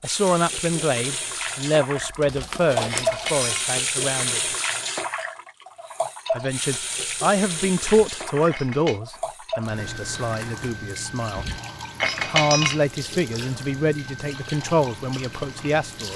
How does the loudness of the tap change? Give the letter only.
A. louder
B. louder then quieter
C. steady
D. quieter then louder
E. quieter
E.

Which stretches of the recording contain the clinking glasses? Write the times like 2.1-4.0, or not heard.
2.2-3.8, 7.8-9.0, 11.3-12.8.